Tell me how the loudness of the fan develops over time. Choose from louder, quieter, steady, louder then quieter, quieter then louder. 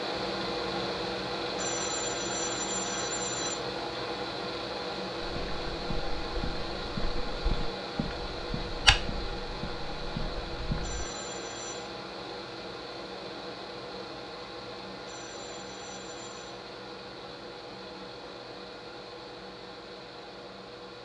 quieter.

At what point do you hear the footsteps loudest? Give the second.
9 s.